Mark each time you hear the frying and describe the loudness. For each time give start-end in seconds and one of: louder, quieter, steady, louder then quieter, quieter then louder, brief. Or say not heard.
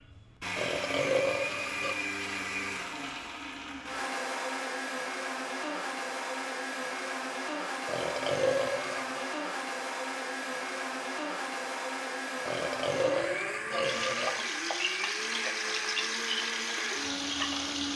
13.8-17.9 steady.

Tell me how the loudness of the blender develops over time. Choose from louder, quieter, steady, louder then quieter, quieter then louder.
steady.